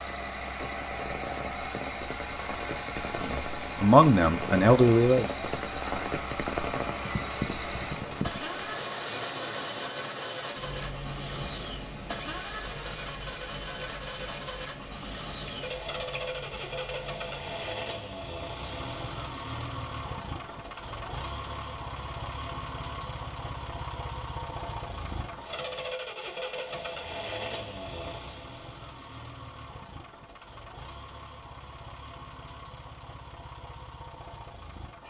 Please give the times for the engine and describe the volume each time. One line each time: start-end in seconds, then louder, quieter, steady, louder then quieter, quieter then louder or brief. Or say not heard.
0.0-35.0 quieter.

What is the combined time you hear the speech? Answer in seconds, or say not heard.
2 s.